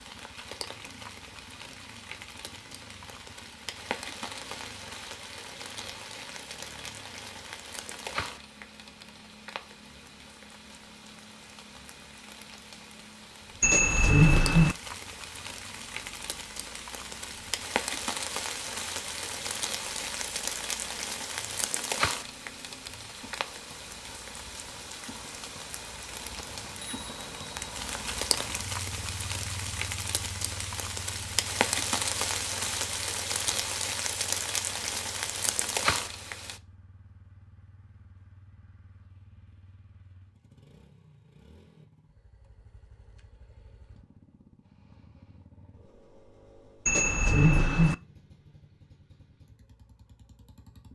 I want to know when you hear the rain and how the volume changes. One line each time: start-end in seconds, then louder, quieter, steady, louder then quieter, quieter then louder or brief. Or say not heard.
0.0-36.6 louder.